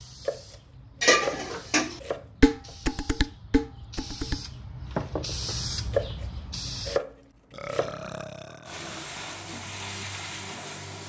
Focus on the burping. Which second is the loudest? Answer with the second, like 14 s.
8 s.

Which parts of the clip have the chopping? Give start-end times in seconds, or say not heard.
0.2-2.8, 5.9-8.0.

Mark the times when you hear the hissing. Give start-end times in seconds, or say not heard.
0.0-7.0, 8.7-11.0.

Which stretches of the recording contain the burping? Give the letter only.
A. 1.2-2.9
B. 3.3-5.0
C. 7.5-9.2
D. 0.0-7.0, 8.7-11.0
C.